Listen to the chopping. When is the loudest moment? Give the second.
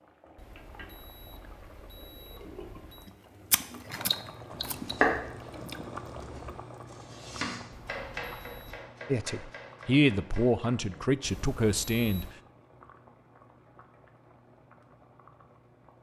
5 s.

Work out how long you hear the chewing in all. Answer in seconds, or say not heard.
3 s.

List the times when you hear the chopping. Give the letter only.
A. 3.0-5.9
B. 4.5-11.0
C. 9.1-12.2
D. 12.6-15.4
B.